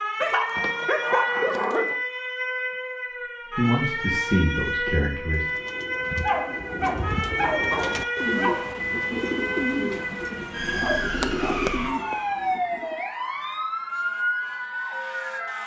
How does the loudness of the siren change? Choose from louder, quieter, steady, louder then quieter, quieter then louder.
steady.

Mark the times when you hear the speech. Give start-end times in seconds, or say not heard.
3.5-5.5.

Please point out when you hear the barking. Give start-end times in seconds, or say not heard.
0.2-1.9, 6.2-8.8, 10.8-11.7.